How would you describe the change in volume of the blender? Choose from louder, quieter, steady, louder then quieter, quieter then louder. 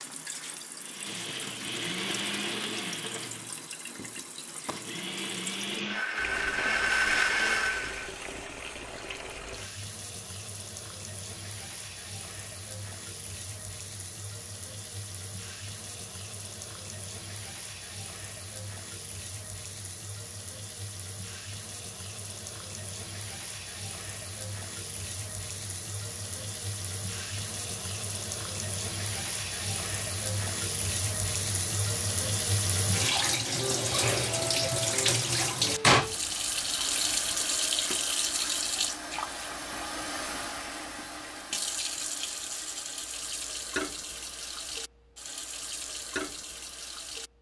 quieter then louder.